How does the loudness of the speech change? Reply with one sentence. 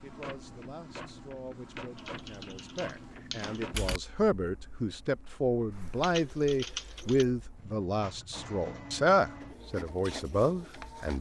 The volume of the speech goes up.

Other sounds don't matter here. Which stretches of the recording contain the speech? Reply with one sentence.
The speech can be heard from 0.0 to 11.1 s.